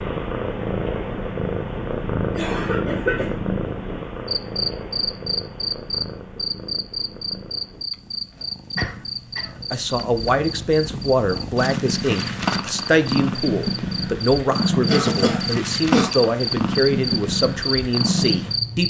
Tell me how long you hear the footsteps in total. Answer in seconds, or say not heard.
not heard.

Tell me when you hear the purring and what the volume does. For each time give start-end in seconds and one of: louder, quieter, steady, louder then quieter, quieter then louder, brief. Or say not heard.
0.0-18.8 quieter then louder.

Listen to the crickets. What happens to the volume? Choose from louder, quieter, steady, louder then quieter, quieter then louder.
quieter then louder.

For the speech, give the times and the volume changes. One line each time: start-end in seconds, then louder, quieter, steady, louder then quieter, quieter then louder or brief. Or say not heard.
9.7-18.8 steady.